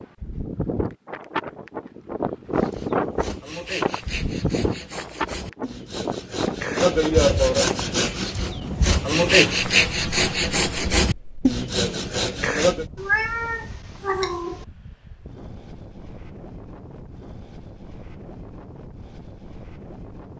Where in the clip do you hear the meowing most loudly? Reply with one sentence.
The loudest moment of the meowing is at 13 seconds.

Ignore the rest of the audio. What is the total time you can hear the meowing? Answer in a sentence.
You can hear the meowing for 2 seconds altogether.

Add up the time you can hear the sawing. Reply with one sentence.
The sawing can be heard for 10 seconds in total.